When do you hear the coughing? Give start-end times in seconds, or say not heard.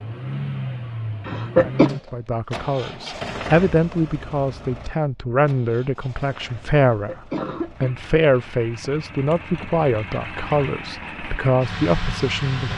1.2-1.9, 6.9-8.0.